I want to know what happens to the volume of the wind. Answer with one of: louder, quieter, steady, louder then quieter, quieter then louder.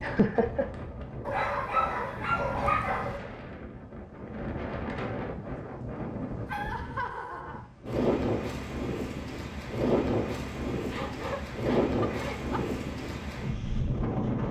louder.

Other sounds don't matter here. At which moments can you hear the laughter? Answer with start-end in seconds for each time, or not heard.
0.0-0.7, 6.7-7.7, 10.8-12.6.